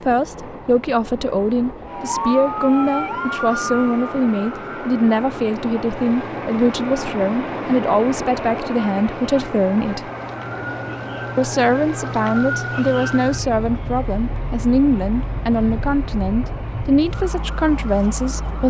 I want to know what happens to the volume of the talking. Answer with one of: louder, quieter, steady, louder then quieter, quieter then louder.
steady.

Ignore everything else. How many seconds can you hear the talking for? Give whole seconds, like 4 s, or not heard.
17 s.